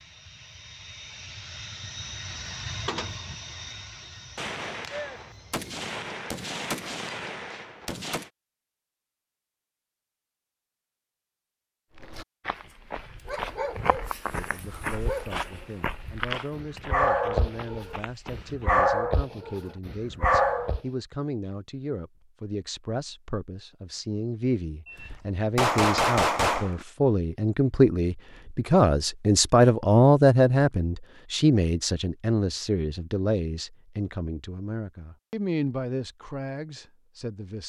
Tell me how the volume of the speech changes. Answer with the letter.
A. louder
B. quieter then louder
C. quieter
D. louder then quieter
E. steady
D.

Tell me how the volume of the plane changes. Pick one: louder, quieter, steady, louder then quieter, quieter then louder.
louder then quieter.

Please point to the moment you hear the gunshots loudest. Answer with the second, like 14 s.
26 s.